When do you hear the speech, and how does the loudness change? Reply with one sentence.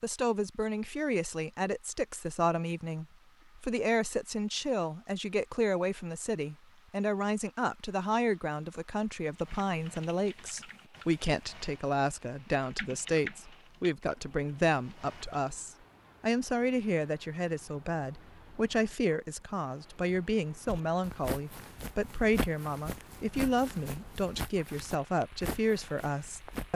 You can hear the speech from 0.0 to 26.7 s, at a steady volume.